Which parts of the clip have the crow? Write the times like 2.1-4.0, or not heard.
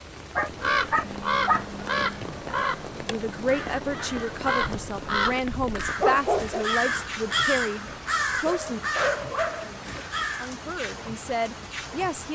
0.4-10.5.